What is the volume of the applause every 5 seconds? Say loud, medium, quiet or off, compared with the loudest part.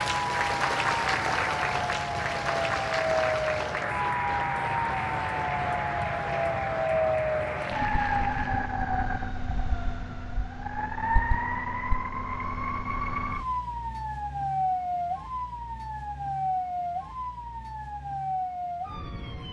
loud, medium, off, off.